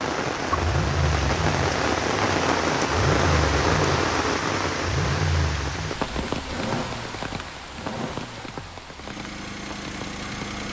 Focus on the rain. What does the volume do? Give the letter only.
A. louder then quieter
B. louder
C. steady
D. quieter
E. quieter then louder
D.